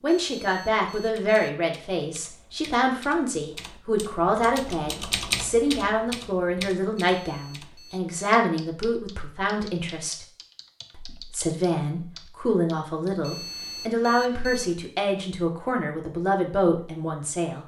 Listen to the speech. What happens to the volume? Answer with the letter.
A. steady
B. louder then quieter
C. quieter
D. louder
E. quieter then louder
A.